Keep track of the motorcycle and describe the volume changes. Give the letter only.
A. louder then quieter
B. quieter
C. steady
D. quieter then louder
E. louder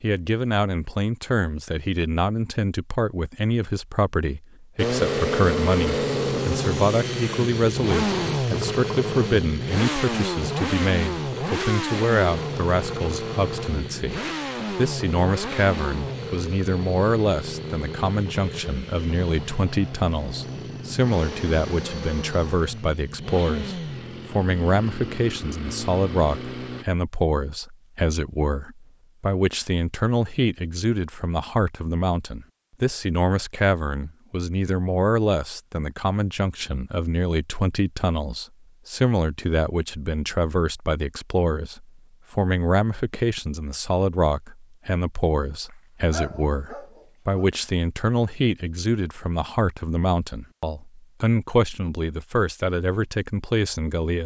B.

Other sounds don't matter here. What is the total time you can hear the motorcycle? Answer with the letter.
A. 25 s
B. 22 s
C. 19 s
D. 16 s
B.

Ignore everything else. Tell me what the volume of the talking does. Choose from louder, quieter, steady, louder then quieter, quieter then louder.
steady.